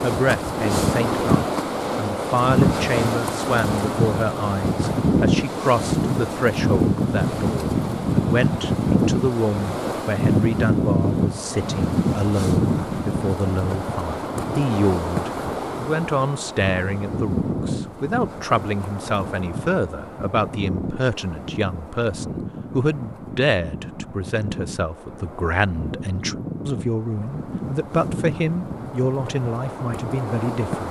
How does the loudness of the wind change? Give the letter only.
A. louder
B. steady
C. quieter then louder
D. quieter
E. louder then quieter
D.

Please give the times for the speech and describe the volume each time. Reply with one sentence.
You can hear the speech from 0.0 to 30.8 s, at a steady volume.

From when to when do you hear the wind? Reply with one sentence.
You can hear the wind from 0.0 to 30.8 s.